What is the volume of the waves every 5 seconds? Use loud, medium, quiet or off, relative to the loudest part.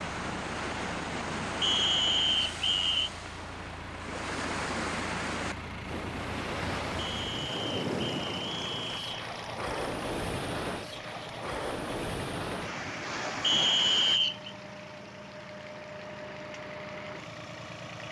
loud, loud, loud, off.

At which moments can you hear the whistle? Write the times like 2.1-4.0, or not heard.
1.6-3.1, 7.0-9.2, 13.4-14.5.